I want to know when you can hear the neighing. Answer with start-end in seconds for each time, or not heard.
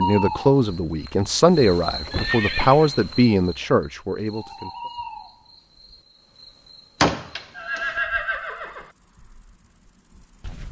2.1-3.2, 7.5-8.9.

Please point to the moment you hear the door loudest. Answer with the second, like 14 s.
7 s.